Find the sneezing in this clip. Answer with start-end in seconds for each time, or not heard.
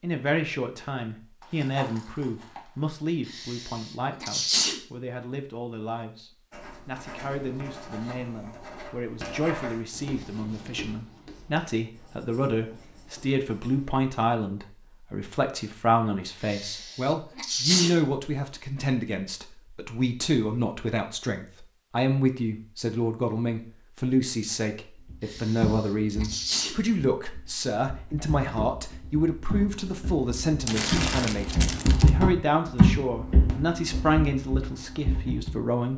3.2-4.8, 16.4-17.9, 25.2-26.8.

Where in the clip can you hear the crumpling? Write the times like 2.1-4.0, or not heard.
1.4-3.0, 30.6-32.1.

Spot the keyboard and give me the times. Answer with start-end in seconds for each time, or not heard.
25.1-35.5.